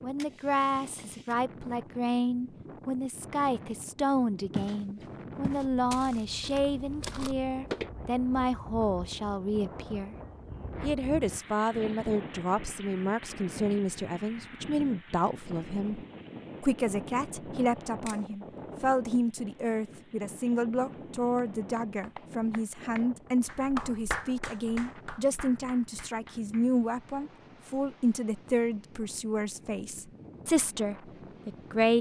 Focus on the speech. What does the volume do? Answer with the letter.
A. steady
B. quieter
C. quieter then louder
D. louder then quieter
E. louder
A.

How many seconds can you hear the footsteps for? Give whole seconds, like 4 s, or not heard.
3 s.